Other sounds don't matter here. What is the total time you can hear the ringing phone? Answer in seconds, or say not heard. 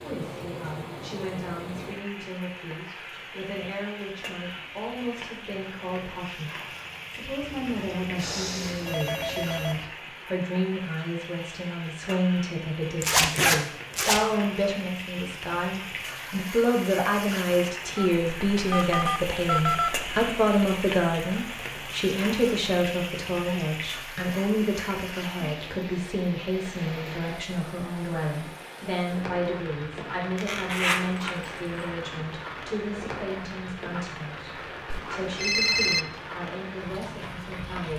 6 s.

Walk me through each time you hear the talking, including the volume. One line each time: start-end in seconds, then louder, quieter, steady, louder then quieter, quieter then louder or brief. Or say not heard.
0.0-37.9 louder then quieter.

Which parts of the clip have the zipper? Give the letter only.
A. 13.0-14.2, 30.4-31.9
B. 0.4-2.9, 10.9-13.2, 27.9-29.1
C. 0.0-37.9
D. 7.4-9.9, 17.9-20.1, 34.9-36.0
A.